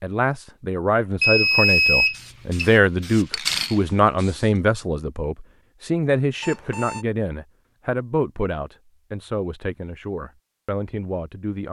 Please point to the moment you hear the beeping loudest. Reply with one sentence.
The loudest moment of the beeping is at 2 seconds.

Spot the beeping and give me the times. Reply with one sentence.
The beeping can be heard from 1.2 to 2.8 s and from 6.4 to 7.0 s.